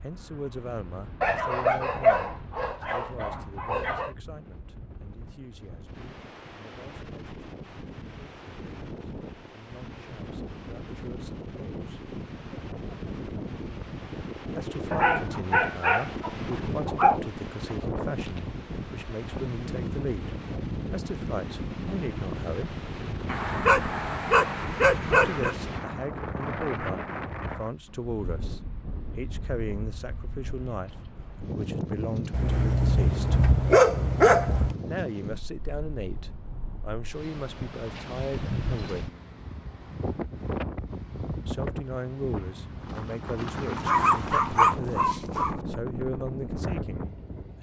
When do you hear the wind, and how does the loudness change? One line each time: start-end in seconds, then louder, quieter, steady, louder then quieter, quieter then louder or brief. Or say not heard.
0.0-47.5 louder.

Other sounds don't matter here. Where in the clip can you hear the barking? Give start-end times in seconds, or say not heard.
1.2-4.1, 14.9-17.2, 23.2-25.6, 32.3-34.8, 43.8-45.5.